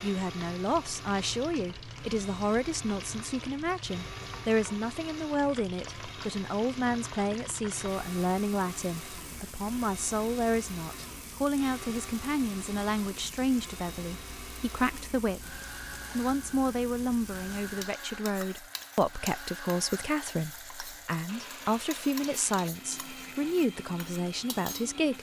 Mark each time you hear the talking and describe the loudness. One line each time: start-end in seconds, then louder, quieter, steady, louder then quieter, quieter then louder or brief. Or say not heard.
0.0-25.1 steady.